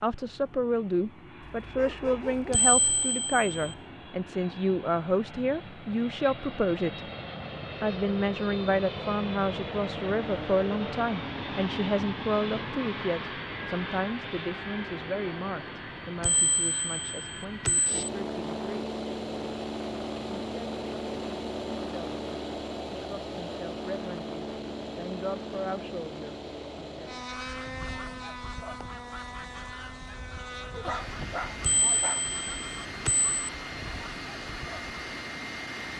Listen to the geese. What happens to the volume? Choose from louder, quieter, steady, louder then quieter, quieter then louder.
steady.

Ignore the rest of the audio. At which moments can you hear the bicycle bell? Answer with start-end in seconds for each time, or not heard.
2.5-3.8, 16.2-18.0, 31.6-33.3.